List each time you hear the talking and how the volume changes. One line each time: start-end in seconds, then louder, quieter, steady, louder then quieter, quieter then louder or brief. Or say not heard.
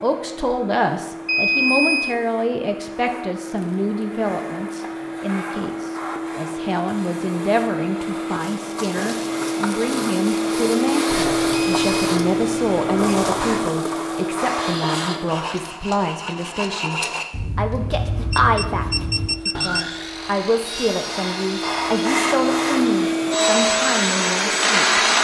0.0-25.1 steady.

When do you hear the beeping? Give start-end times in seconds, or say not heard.
1.2-2.1, 11.1-13.7, 17.4-19.9.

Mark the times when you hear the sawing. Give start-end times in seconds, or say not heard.
14.6-23.1.